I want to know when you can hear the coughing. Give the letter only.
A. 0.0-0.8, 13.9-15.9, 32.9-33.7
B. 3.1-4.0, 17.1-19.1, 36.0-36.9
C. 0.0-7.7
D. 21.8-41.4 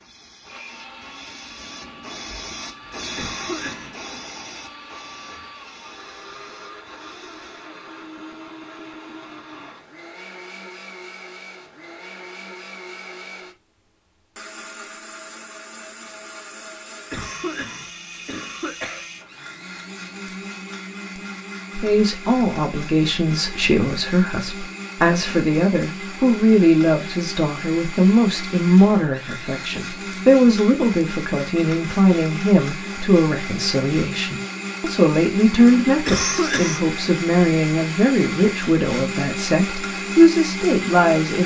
B.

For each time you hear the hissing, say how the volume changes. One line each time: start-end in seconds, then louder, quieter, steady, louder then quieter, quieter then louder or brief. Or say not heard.
0.0-7.7 louder then quieter.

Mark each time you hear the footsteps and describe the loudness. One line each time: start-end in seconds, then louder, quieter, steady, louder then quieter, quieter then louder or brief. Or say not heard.
not heard.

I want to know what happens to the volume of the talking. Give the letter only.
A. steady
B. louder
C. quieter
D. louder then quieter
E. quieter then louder
A.